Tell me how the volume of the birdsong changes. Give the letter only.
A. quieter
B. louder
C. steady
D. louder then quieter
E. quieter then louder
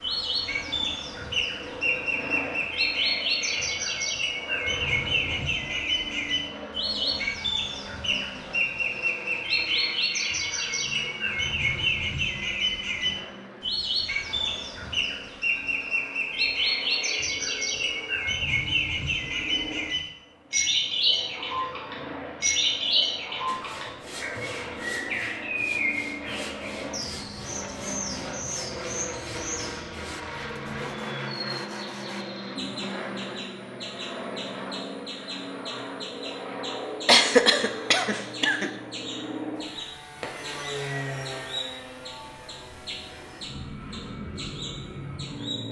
A.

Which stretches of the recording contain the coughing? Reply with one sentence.
You can hear the coughing from 37.0 to 38.7 s.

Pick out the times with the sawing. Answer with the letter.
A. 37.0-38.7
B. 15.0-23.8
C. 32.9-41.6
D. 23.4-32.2
D.